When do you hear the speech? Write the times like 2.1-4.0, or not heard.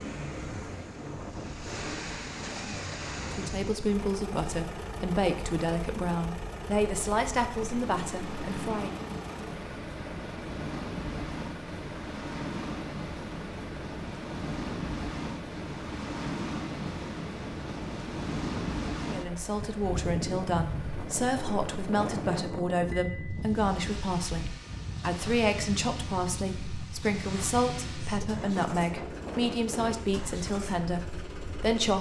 3.3-8.9, 19.1-31.9.